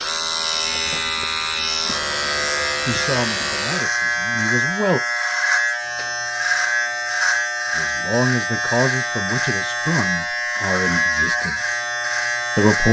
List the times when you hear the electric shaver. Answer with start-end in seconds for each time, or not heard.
0.0-12.8.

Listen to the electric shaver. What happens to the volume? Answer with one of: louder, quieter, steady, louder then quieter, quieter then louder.
steady.